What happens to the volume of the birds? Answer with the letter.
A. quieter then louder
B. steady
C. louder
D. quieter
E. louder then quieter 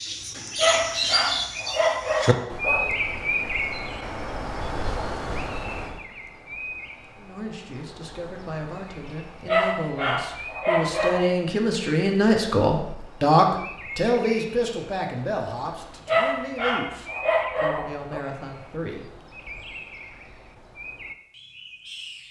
D.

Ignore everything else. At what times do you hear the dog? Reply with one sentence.
You can hear the dog from 0.6 to 3.0 s, from 9.4 to 11.3 s and from 16.1 to 18.2 s.